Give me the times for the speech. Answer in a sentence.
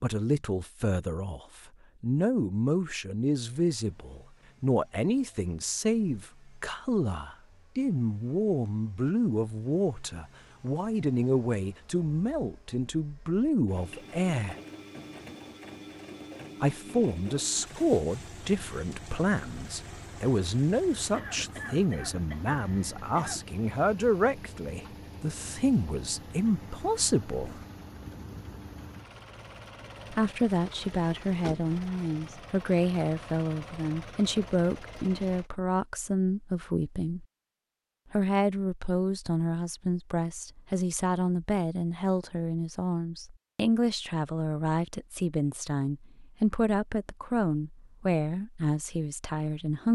The speech can be heard from 0.0 to 14.6 s, from 16.6 to 27.6 s, from 30.1 to 37.2 s and from 38.1 to 49.9 s.